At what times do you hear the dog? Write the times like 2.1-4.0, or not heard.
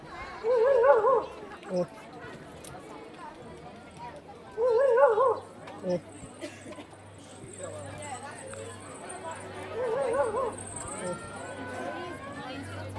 0.4-1.9, 4.5-6.0, 9.7-11.2.